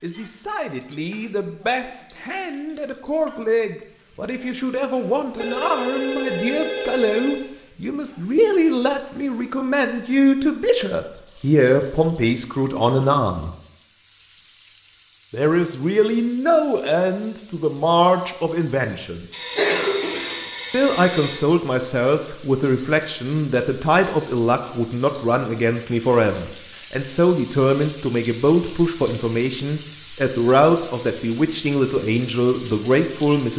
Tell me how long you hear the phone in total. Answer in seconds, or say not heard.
4 s.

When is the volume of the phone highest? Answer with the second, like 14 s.
20 s.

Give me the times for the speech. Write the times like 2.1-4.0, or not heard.
0.0-13.6, 15.3-19.2, 20.7-33.5.